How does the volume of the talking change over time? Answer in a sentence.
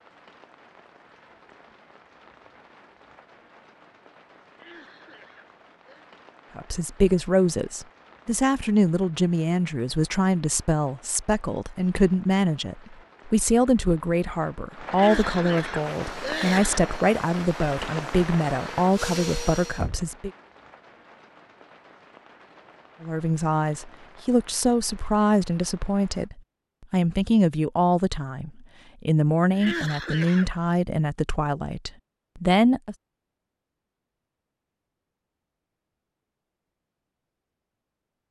The volume of the talking stays about the same.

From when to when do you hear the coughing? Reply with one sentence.
The coughing can be heard from 4.5 to 6.0 s, from 14.9 to 16.9 s and from 29.5 to 30.5 s.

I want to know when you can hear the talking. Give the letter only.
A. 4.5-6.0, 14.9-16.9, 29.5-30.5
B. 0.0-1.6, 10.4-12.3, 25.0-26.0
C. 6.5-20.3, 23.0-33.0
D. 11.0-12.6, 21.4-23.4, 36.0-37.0
C.